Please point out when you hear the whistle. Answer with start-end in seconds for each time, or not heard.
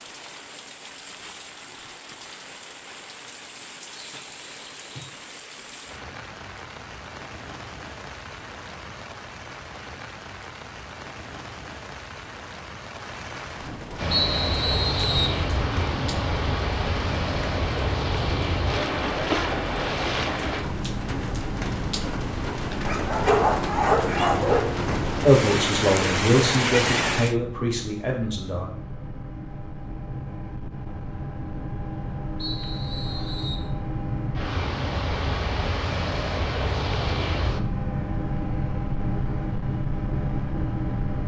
4.0-5.2, 14.1-15.4, 32.4-33.7.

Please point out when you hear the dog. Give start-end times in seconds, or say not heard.
22.9-24.7.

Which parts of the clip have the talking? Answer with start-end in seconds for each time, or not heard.
25.2-28.7.